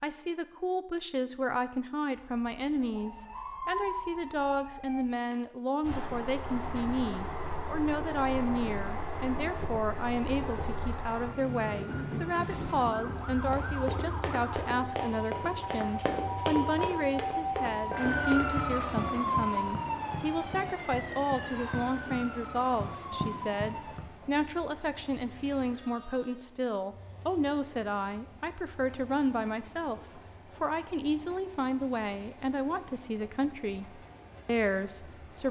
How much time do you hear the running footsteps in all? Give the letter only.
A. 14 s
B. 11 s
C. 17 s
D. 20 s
B.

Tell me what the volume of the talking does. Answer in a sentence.
The volume of the talking stays about the same.